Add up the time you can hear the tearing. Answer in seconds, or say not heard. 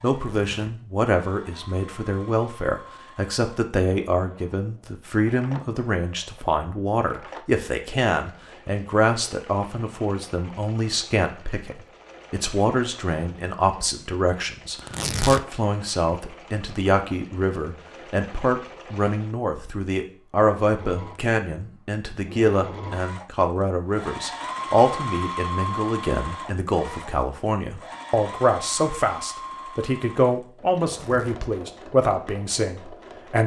2 s.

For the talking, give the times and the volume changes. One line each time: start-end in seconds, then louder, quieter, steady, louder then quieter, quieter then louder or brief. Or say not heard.
0.0-33.4 steady.